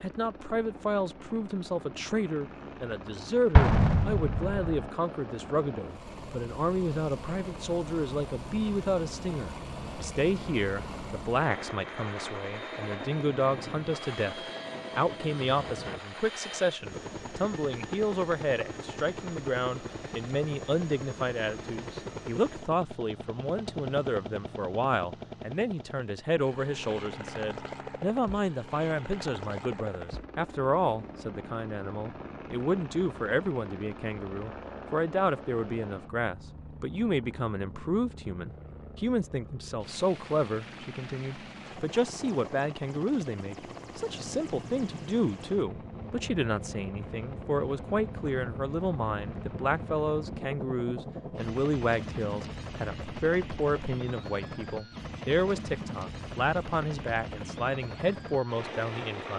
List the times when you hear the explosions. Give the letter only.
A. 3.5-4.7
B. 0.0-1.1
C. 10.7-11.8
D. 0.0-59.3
A.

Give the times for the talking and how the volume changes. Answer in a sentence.
You can hear the talking from 0.0 to 59.3 s, at a steady volume.